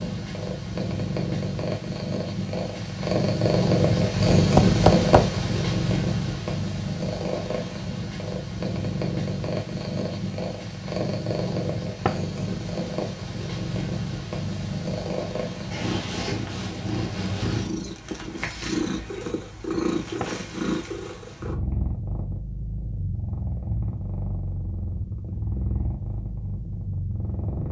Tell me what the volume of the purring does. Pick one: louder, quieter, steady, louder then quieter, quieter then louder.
quieter.